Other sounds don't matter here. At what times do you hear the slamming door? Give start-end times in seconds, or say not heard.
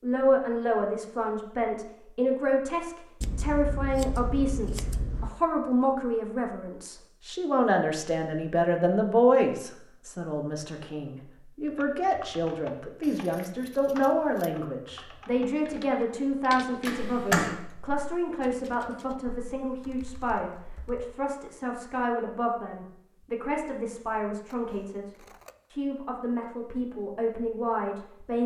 16.9-17.6.